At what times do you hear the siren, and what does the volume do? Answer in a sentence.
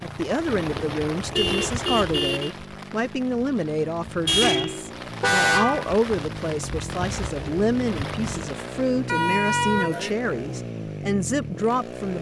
You can't hear the siren here.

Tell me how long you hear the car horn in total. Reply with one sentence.
You can hear the car horn for 5 seconds altogether.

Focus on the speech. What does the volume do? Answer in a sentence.
The volume of the speech stays about the same.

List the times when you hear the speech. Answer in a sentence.
The speech can be heard from 0.0 to 12.1 s.